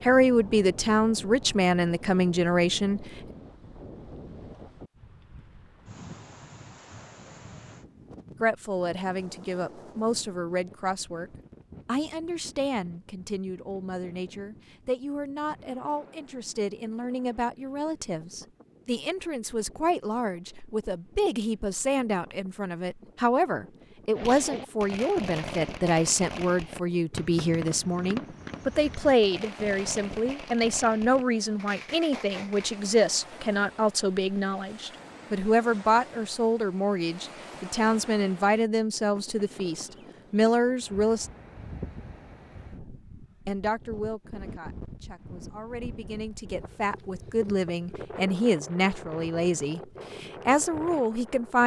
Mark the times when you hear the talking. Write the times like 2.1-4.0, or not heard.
0.0-3.0, 8.4-41.3, 43.5-51.6.